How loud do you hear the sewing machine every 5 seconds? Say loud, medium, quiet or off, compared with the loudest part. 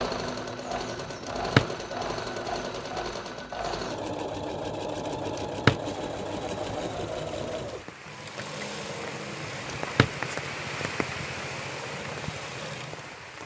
loud, loud, medium.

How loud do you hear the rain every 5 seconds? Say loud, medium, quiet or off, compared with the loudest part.
off, medium, loud.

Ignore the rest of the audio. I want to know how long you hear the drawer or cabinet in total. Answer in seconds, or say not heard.
2 s.